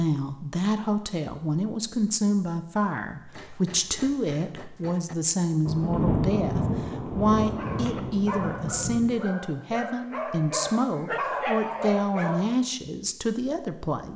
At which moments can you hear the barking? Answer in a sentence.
The barking can be heard from 7.4 to 12.6 s.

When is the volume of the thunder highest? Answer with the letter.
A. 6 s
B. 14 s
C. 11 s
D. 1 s
A.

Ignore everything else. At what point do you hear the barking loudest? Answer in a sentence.
The volume of the barking peaks at 11 seconds.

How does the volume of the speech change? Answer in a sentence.
The volume of the speech stays about the same.